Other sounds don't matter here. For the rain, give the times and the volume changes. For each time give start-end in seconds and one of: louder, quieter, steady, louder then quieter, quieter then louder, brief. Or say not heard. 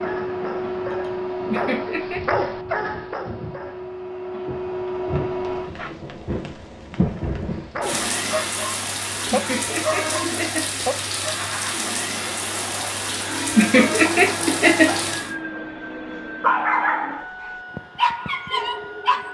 0.0-15.3 louder.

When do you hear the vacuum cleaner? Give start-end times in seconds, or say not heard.
0.0-6.0, 12.2-19.2.